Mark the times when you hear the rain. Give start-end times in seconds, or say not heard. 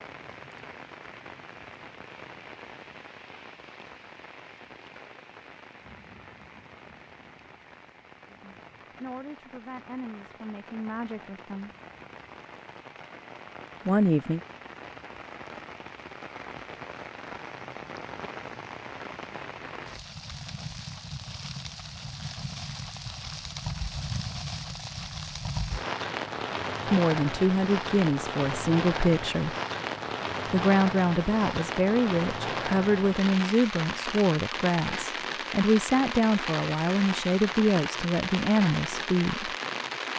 0.0-40.1.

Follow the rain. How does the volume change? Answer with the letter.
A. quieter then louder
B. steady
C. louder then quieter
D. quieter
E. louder
E.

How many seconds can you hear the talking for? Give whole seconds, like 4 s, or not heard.
16 s.